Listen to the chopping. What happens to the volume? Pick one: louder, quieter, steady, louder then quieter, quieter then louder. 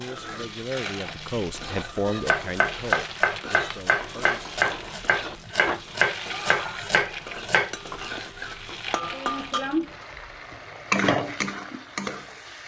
steady.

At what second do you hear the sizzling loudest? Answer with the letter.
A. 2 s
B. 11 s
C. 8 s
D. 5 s
B.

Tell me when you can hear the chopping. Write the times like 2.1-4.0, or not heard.
2.2-7.8.